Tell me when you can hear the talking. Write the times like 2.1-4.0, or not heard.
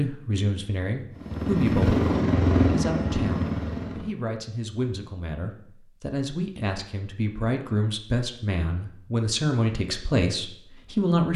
0.0-11.3.